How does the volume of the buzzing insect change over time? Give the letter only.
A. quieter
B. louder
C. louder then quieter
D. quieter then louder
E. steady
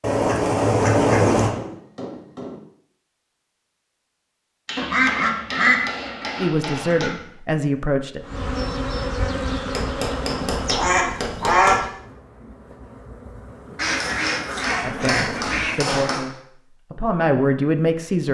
D.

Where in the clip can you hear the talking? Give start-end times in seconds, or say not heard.
6.4-8.2, 14.8-18.2.